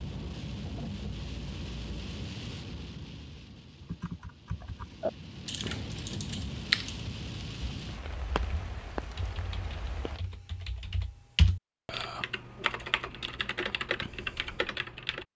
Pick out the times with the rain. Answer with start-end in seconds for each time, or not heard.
0.0-10.2.